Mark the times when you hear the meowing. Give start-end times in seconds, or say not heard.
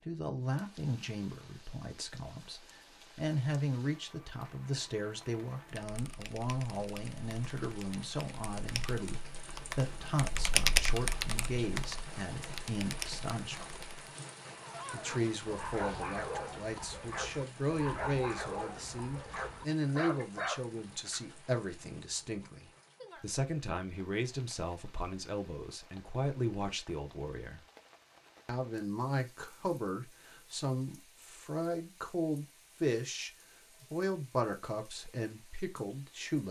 not heard.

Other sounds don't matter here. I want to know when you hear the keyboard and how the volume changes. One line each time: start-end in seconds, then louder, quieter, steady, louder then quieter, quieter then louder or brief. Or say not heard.
5.7-14.1 louder then quieter.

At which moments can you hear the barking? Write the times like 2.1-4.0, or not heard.
14.6-21.4.